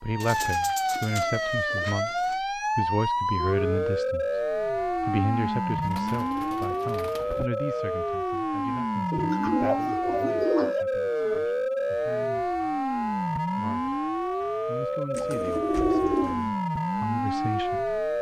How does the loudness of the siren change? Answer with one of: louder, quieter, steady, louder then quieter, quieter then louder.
steady.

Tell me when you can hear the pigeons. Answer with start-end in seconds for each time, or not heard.
0.2-2.4, 5.8-7.5, 9.1-10.8, 15.2-16.5.